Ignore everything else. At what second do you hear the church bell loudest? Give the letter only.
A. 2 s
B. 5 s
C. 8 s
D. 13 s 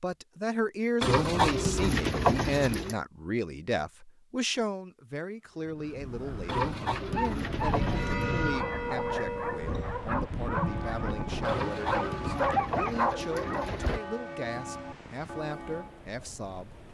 C.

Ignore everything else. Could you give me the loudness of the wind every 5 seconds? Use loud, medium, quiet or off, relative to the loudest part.
off, loud, loud, quiet.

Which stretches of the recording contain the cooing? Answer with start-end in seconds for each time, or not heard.
1.0-3.0, 6.5-8.2, 11.4-14.0.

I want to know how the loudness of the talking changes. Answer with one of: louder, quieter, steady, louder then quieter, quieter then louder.
quieter.